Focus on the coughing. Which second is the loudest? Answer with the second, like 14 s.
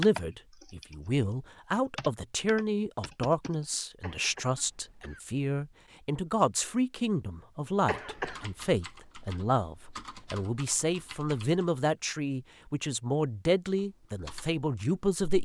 8 s.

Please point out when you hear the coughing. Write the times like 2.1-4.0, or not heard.
4.0-5.2, 7.8-8.4.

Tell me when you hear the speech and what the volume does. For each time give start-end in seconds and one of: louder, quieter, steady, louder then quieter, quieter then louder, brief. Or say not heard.
0.0-15.3 steady.